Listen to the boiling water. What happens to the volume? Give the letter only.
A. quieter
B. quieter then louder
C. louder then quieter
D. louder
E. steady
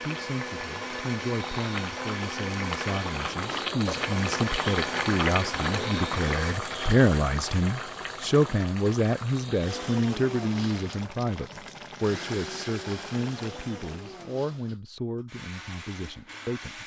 C.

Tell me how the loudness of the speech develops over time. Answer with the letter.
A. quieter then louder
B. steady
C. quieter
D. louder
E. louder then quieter
E.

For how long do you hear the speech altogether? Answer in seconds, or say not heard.
17 s.